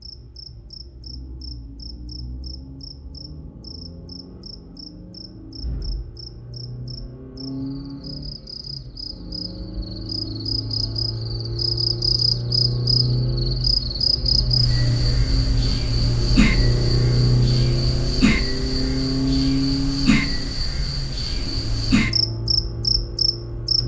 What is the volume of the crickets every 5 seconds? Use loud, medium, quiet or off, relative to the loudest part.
quiet, quiet, loud, loud, loud.